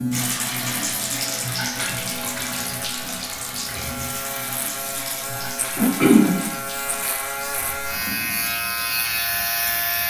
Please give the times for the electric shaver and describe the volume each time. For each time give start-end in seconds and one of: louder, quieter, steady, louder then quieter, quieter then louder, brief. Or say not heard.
0.0-10.0 louder.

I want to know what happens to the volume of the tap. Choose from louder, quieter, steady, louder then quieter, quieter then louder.
quieter.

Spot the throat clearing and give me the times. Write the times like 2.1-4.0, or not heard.
5.2-6.3.